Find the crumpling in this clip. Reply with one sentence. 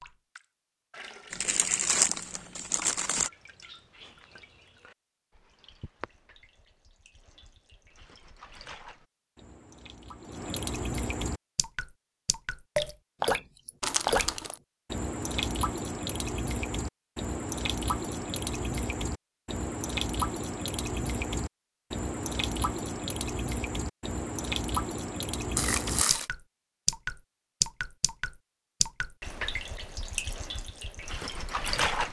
The crumpling can be heard from 1.3 to 3.3 s, from 13.8 to 14.6 s and from 25.6 to 26.2 s.